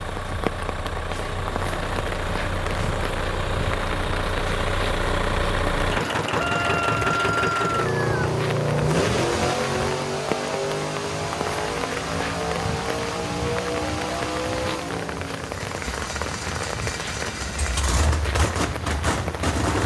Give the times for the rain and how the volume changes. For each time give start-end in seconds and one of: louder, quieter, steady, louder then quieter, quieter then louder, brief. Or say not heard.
0.0-19.8 steady.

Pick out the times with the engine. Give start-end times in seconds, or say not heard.
0.0-19.8.